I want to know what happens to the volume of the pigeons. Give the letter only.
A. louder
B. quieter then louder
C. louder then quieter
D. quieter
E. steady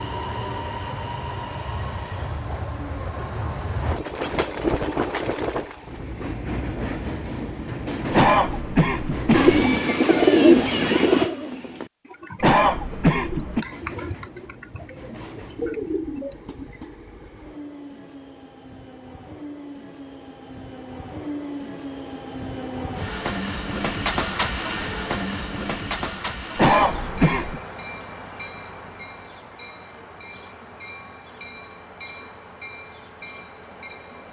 B.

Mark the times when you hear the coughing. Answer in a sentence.
The coughing can be heard from 8.1 to 9.6 s, from 12.4 to 13.7 s and from 26.6 to 27.6 s.